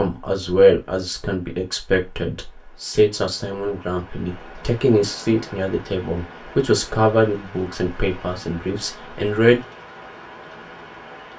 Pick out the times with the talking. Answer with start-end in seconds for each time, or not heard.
0.0-9.6.